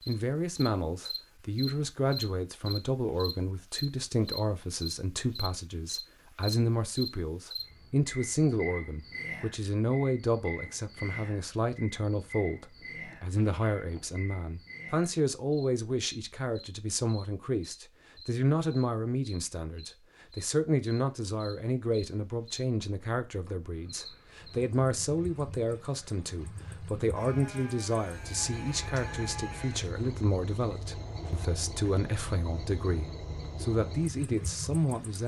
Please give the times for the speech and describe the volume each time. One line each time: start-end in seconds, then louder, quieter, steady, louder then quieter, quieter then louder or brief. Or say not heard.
0.1-35.2 steady.